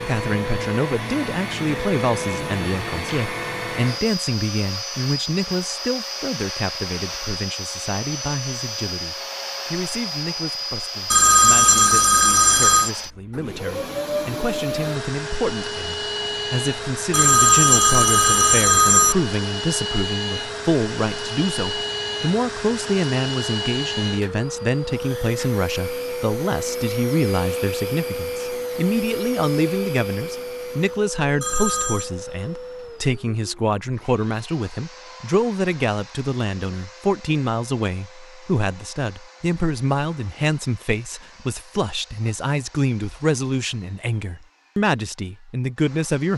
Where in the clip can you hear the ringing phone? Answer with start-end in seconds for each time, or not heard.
11.1-12.9, 17.1-19.1, 31.4-32.1.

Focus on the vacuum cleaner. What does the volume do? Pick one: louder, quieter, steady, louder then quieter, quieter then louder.
quieter.